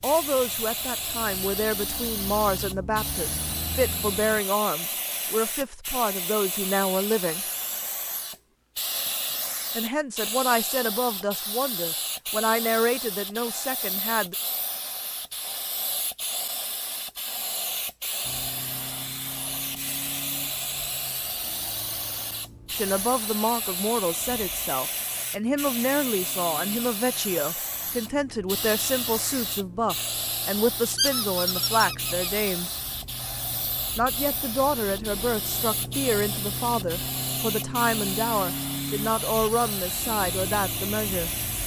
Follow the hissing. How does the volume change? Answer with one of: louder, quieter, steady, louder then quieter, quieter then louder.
steady.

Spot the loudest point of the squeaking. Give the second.
31 s.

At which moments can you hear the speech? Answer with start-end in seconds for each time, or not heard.
0.0-7.5, 9.8-14.3, 22.7-32.8, 34.0-41.3.